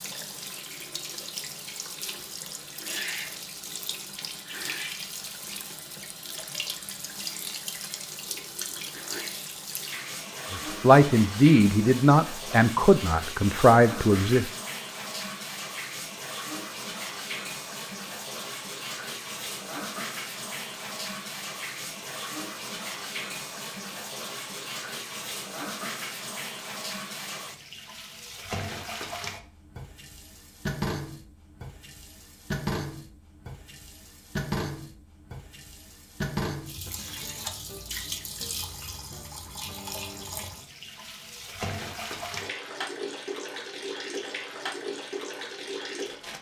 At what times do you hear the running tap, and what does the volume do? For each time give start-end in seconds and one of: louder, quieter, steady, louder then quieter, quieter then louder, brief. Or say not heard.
0.0-46.3 steady.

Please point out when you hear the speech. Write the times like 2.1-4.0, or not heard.
10.5-14.5.